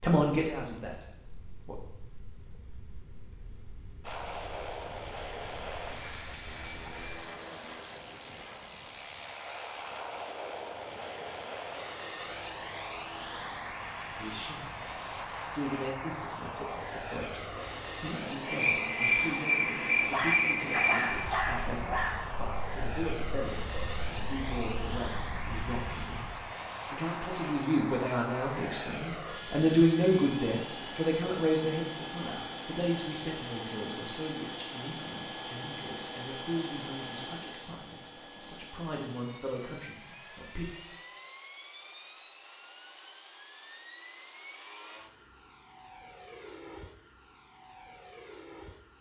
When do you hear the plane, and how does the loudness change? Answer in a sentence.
You can hear the plane from 4.0 to 48.9 s, getting quieter.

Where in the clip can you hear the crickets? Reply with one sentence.
You can hear the crickets from 0.0 to 26.5 s.